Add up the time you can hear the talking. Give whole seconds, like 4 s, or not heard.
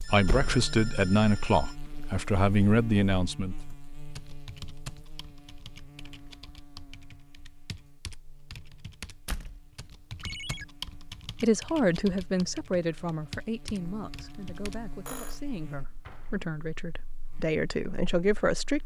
11 s.